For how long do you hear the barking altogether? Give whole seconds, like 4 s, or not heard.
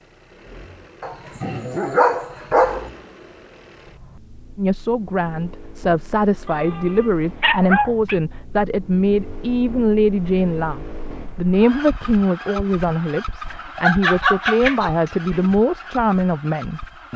5 s.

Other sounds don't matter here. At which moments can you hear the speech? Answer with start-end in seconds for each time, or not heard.
4.5-17.1.